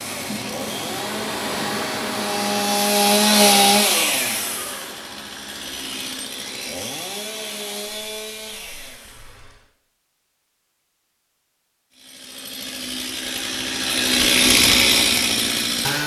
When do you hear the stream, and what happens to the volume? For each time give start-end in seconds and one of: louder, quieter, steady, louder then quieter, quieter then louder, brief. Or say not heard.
0.0-9.7 quieter.